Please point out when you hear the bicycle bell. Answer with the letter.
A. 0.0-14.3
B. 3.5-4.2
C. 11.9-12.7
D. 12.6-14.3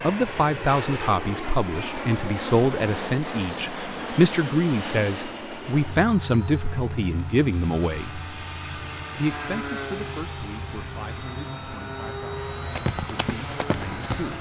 B.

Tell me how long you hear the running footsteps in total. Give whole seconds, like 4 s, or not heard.
2 s.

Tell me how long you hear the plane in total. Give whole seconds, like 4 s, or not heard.
14 s.